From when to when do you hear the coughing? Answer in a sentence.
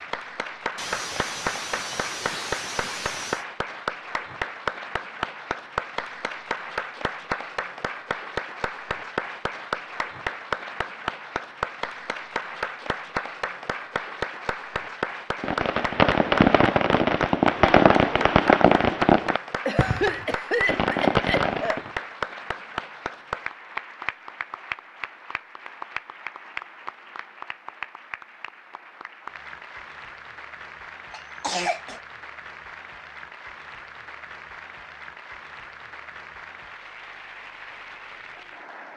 You can hear the coughing from 0.8 to 3.5 s, from 19.6 to 21.8 s and from 31.1 to 32.0 s.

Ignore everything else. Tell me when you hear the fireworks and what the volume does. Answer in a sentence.
The fireworks can be heard from 15.4 to 21.8 s, getting quieter then louder.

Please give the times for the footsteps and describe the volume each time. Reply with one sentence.
You can't hear the footsteps here.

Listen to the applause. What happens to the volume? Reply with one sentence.
The volume of the applause goes down.